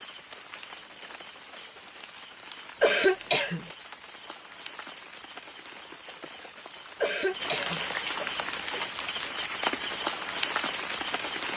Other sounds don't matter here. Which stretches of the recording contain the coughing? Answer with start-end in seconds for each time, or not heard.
2.8-3.6, 7.0-7.8.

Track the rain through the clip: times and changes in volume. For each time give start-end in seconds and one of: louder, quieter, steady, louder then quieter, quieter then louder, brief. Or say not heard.
0.0-11.5 louder.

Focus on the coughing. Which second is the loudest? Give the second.
3 s.